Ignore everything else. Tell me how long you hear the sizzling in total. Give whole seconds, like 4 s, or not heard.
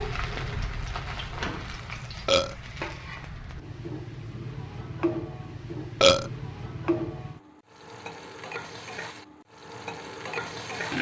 11 s.